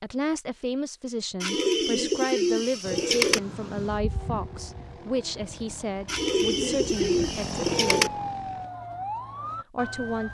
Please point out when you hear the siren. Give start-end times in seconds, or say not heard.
2.8-10.3.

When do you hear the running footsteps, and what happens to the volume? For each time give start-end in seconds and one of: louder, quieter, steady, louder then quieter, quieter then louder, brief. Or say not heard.
not heard.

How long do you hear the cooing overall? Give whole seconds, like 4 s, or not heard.
4 s.